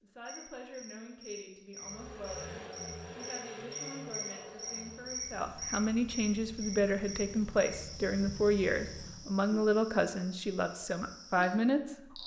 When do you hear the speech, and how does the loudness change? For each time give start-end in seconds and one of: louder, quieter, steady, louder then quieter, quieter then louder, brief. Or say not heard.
0.0-12.2 louder.